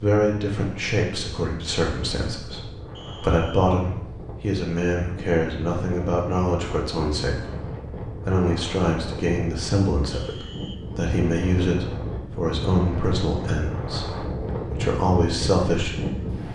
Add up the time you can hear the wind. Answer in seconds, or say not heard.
16 s.